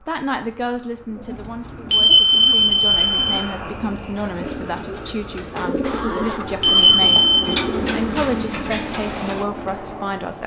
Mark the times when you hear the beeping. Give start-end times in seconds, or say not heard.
1.9-3.5, 6.6-7.5.